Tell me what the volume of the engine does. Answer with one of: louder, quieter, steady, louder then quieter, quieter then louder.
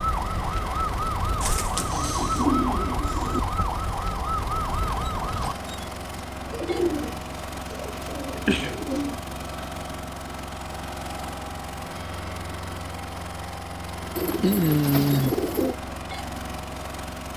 steady.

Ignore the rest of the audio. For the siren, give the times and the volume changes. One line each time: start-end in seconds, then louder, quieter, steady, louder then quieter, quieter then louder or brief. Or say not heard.
0.0-5.5 steady.